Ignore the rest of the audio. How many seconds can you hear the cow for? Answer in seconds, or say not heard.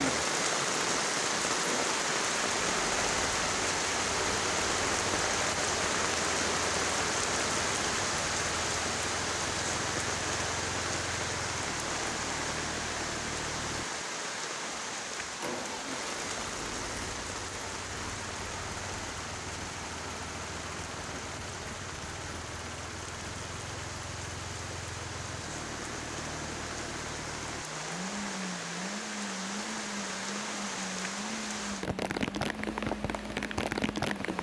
not heard.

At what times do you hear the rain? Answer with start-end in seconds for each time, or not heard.
0.0-34.3.